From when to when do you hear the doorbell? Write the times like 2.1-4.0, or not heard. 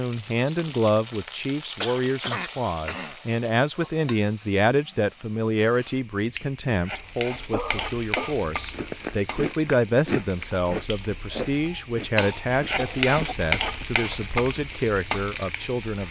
not heard.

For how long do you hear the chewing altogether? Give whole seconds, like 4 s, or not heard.
6 s.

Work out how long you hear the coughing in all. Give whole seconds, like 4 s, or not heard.
3 s.